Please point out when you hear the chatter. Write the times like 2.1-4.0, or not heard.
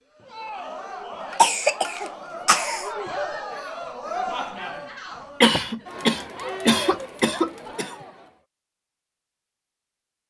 0.1-8.4.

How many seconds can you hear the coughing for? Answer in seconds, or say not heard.
4 s.